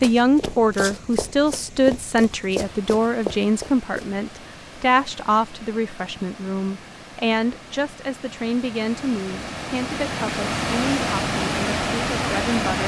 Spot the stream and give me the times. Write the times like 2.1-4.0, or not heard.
0.0-12.8.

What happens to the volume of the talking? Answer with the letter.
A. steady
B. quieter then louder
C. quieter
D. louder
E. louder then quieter
C.